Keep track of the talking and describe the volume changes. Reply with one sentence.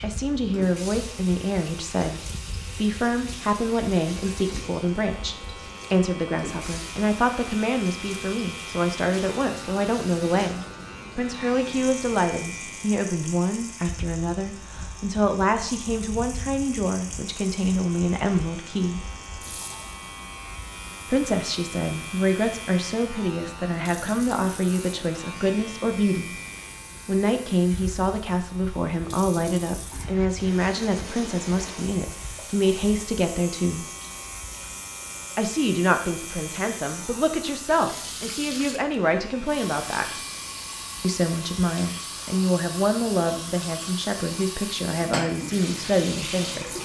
The loudness of the talking stays about the same.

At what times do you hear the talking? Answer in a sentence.
You can hear the talking from 0.0 to 19.1 s, from 21.1 to 26.4 s, from 27.1 to 33.9 s, from 35.4 to 40.2 s and from 41.0 to 46.7 s.